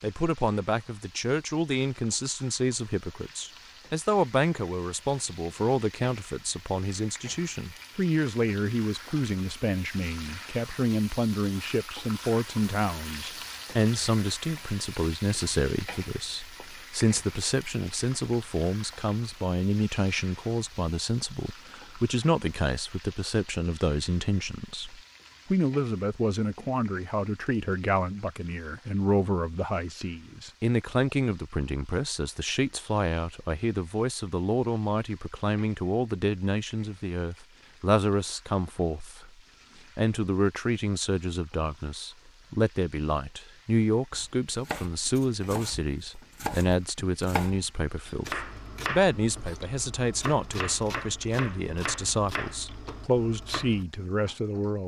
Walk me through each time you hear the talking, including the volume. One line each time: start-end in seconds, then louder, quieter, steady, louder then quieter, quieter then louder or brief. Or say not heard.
0.0-39.3 steady
40.0-54.8 steady.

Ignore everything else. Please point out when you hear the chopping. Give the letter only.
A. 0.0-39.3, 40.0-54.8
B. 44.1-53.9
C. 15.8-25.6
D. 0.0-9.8
B.